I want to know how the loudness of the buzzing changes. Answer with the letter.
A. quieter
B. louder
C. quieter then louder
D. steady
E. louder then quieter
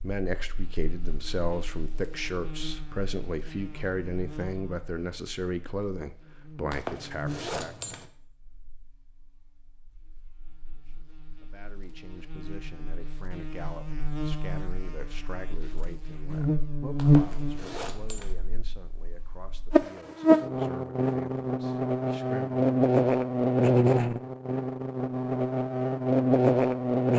B.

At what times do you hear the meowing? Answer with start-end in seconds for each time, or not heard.
not heard.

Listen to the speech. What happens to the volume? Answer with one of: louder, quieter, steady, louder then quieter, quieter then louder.
quieter.